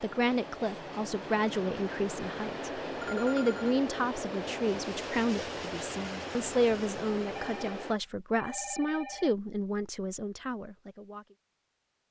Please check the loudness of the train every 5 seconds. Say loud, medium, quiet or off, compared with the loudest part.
loud, loud, off.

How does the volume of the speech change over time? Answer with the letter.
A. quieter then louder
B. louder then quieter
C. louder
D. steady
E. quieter
D.